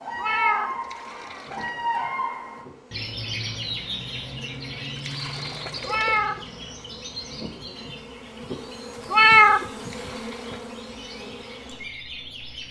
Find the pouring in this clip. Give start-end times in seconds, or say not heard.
0.7-1.8, 4.8-6.3, 9.9-10.7.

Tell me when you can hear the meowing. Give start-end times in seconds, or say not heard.
0.1-1.5, 5.8-6.4, 9.1-9.7.